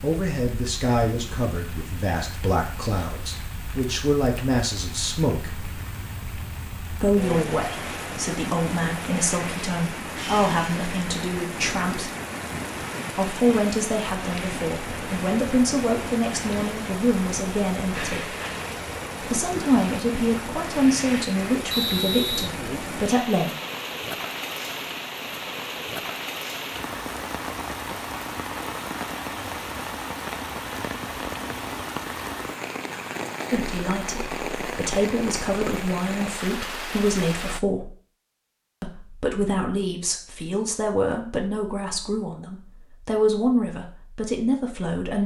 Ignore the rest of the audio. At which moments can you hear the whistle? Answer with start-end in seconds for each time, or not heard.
21.7-22.5.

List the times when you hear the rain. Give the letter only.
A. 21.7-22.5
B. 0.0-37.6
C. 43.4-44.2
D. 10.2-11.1
B.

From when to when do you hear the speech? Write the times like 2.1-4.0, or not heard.
0.0-5.5, 7.0-12.1, 13.1-18.3, 19.2-23.5, 33.5-37.9, 38.8-45.2.